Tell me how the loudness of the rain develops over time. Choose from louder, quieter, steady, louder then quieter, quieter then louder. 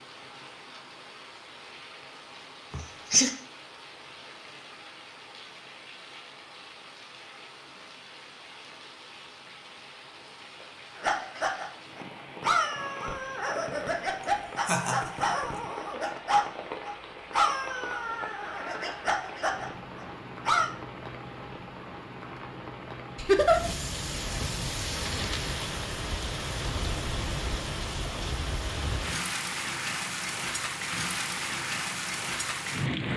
louder.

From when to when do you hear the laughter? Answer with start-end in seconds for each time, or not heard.
2.7-3.3, 14.7-15.3, 23.1-23.6.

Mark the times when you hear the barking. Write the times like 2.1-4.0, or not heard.
10.9-20.7.